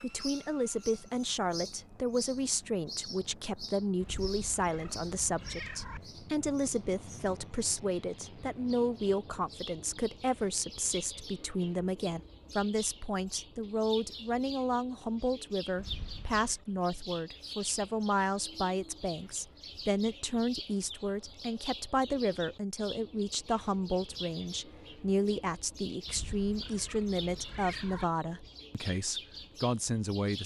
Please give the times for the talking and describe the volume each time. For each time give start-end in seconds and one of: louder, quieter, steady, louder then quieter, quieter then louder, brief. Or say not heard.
0.0-30.4 steady.